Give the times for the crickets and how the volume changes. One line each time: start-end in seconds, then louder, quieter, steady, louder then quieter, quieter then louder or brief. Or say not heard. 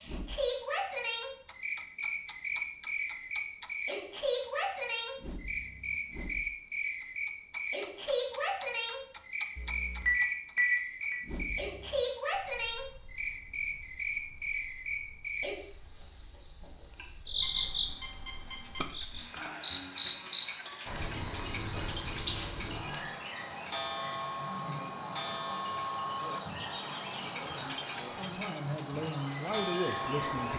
0.0-30.5 steady.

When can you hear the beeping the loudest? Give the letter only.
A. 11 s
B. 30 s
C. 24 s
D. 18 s
A.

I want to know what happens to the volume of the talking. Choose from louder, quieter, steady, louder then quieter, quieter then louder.
louder.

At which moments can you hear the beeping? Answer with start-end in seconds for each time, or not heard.
9.6-11.2, 17.4-18.8.